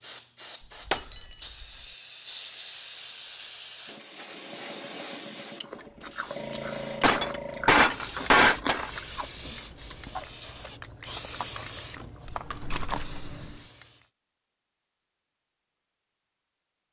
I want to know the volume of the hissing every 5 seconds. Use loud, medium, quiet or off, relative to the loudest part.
loud, loud, loud, off.